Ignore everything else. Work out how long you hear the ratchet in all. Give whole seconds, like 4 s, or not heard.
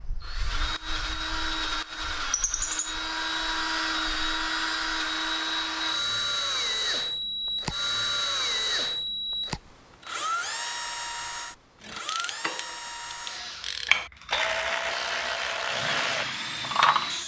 5 s.